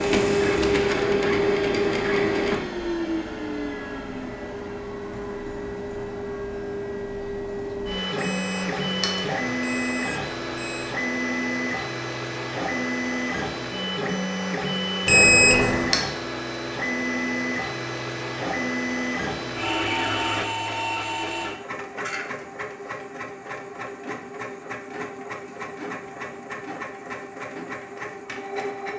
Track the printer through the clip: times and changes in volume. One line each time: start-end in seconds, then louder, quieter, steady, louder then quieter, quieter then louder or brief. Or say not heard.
0.0-28.9 quieter.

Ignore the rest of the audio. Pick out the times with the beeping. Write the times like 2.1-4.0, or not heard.
8.2-10.9, 15.1-15.9.